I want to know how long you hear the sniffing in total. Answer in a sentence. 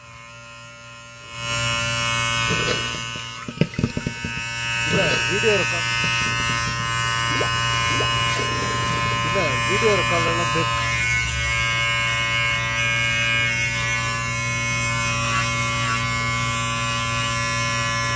The sniffing can be heard for 2 seconds in total.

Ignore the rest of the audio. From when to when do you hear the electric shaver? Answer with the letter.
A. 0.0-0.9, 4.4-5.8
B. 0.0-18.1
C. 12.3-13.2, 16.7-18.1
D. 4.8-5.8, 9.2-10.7
B.